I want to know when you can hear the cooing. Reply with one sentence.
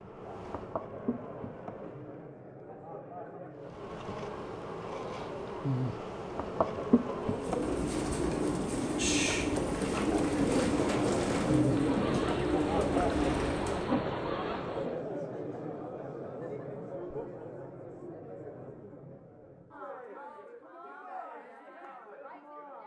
The cooing can be heard from 7.2 to 13.9 s.